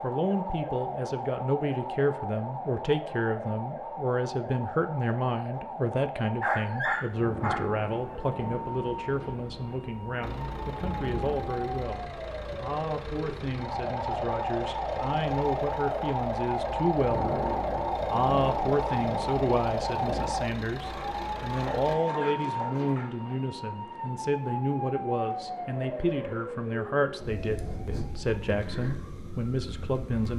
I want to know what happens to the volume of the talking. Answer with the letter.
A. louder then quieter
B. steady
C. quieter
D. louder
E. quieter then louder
B.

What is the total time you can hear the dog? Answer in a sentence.
You can hear the dog for 4 seconds altogether.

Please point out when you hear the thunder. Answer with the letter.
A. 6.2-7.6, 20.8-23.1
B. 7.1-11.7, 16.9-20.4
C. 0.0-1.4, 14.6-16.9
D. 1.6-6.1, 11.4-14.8
B.